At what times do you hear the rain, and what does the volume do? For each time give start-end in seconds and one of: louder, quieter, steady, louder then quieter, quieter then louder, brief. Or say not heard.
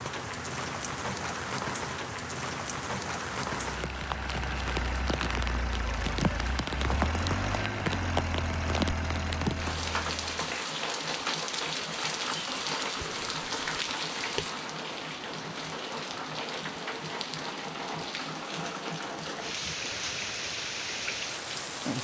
0.0-21.9 steady.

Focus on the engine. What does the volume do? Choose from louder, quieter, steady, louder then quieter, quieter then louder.
steady.